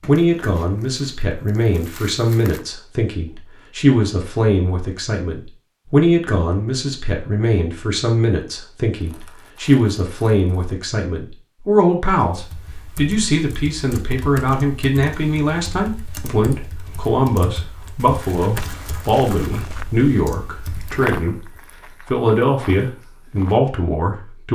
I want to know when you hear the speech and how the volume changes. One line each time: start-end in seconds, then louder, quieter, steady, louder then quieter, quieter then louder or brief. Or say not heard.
0.1-21.4 steady
22.1-24.5 brief.